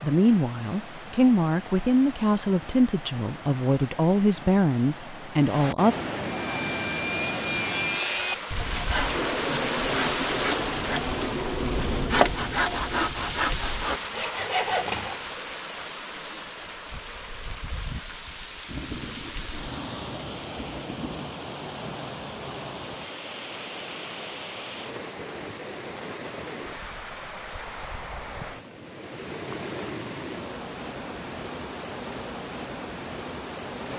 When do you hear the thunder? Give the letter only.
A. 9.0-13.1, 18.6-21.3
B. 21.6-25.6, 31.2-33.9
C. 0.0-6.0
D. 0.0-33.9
A.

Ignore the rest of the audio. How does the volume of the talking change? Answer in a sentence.
The volume of the talking stays about the same.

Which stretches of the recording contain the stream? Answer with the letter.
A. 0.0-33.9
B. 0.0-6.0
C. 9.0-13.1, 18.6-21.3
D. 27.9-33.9
A.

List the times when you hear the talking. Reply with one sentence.
The talking can be heard from 0.0 to 6.0 s.